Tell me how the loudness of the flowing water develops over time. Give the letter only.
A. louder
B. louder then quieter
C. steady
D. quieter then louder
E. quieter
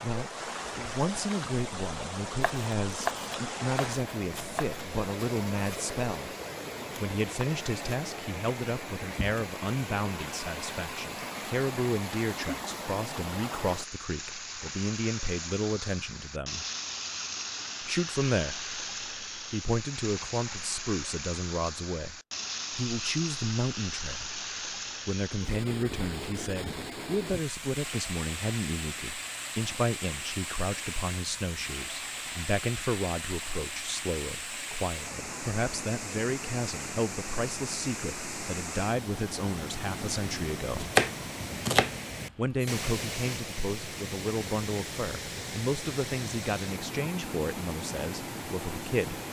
C.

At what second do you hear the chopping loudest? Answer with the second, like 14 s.
41 s.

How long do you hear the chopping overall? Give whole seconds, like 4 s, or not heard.
4 s.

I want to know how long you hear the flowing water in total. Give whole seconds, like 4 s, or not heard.
49 s.